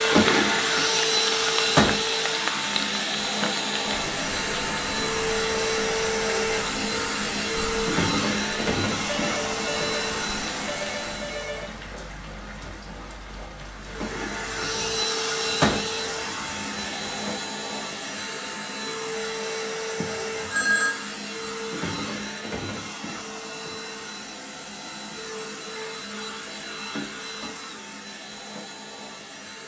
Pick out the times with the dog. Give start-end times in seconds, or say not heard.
not heard.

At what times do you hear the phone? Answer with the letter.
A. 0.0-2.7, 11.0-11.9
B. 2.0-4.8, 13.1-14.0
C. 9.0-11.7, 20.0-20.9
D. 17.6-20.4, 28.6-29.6
C.